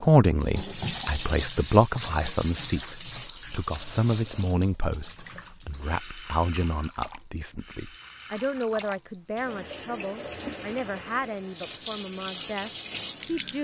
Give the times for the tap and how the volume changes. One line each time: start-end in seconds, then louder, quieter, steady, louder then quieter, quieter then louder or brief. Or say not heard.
0.1-13.5 quieter then louder.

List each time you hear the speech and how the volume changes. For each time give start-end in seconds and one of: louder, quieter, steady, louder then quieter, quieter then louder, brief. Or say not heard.
0.0-13.5 quieter.